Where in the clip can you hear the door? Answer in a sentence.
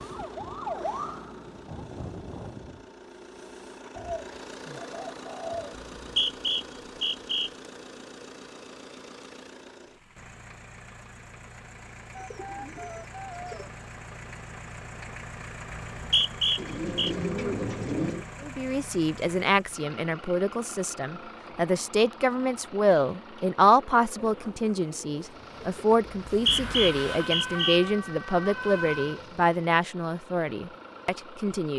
The door can't be heard in this clip.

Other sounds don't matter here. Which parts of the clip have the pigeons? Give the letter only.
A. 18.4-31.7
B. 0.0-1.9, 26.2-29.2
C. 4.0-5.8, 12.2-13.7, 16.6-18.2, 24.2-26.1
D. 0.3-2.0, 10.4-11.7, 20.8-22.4
C.